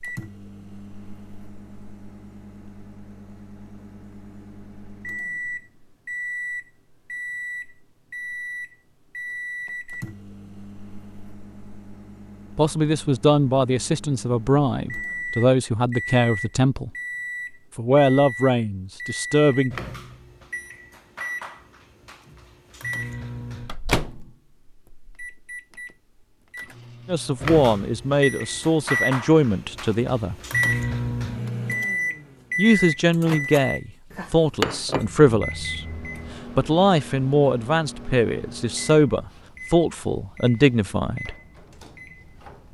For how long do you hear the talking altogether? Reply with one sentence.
You can hear the talking for 18 seconds altogether.